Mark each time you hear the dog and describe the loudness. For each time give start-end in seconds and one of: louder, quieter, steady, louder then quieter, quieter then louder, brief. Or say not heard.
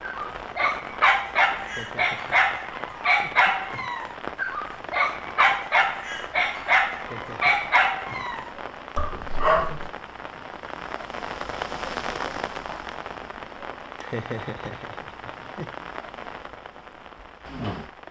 0.0-9.9 steady.